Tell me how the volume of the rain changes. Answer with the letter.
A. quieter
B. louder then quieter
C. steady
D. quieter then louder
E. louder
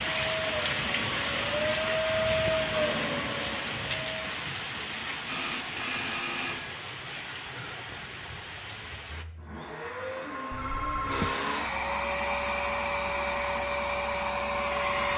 A.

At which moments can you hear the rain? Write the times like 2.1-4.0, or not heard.
0.0-9.2.